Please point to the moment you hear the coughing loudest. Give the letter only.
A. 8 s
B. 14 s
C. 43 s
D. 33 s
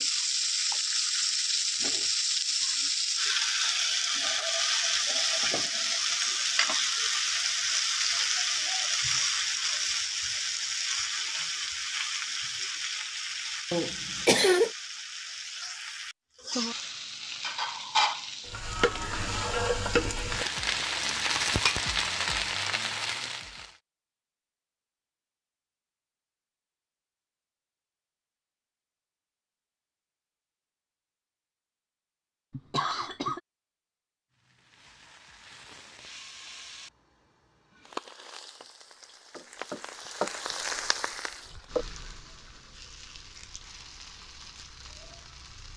B.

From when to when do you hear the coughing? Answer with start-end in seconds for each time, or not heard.
13.7-14.7, 32.5-33.4.